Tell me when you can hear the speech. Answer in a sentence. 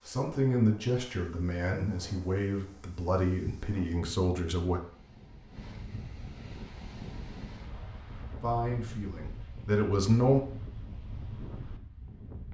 The speech can be heard from 0.0 to 4.8 s and from 8.4 to 10.4 s.